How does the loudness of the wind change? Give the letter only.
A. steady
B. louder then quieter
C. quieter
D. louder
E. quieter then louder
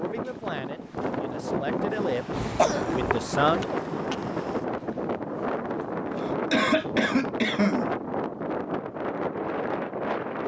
A.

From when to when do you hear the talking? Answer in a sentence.
You can hear the talking from 0.0 to 3.7 s.